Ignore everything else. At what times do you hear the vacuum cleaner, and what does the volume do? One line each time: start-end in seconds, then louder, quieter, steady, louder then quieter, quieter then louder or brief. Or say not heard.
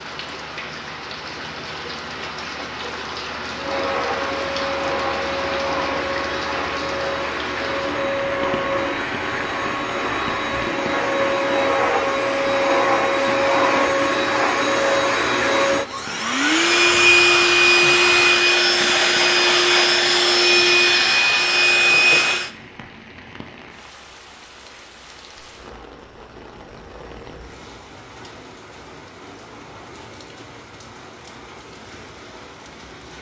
3.5-22.5 louder.